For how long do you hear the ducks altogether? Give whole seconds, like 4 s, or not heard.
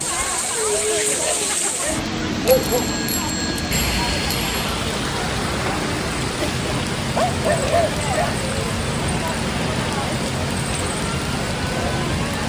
not heard.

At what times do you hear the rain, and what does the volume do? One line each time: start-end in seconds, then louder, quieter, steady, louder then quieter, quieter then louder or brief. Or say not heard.
0.0-12.4 steady.